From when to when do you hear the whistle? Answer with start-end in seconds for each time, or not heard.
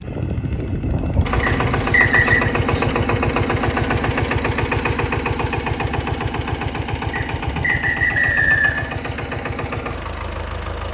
1.4-2.5, 7.1-8.9.